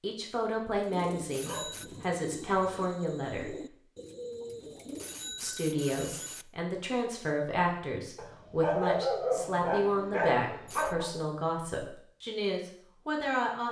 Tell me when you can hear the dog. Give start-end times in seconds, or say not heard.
1.4-2.8, 8.2-11.1.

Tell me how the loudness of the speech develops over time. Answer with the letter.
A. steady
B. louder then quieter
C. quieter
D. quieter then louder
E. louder
A.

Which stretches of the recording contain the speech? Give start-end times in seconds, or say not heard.
0.0-3.5, 5.4-13.6.